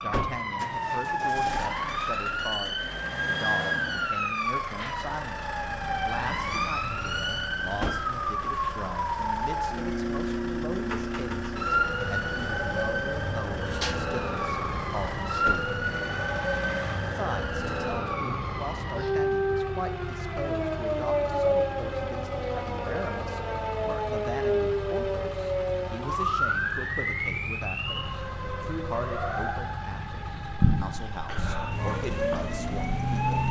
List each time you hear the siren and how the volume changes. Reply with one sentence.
The siren can be heard from 0.0 to 33.4 s, at a steady volume.